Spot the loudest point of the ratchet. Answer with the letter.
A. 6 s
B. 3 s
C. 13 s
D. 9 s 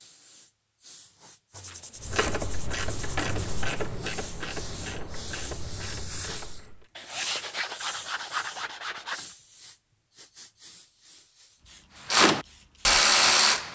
C.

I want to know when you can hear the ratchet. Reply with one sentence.
You can hear the ratchet from 2.0 to 6.9 s and from 12.1 to 13.7 s.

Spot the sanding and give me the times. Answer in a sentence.
You can hear the sanding from 1.5 to 3.6 s and from 7.0 to 9.3 s.